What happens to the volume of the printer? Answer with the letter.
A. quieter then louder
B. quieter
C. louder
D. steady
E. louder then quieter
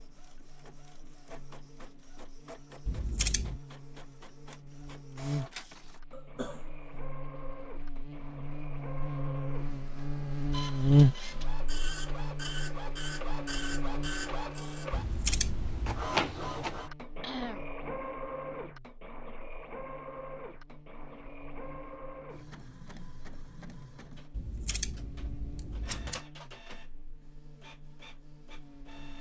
E.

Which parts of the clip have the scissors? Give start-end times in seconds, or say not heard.
2.9-3.6, 14.9-16.1, 24.3-26.2.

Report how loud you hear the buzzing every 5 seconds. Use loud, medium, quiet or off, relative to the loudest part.
quiet, medium, loud, quiet, quiet, quiet.